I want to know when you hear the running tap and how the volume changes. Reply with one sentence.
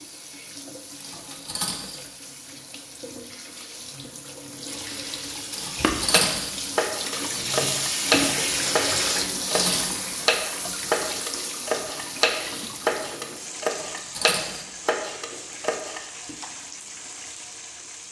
The running tap can be heard from 0.0 to 18.0 s, getting louder then quieter.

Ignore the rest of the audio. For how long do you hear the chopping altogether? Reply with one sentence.
You can hear the chopping for 11 seconds altogether.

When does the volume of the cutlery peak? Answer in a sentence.
The loudest moment of the cutlery is at 6 seconds.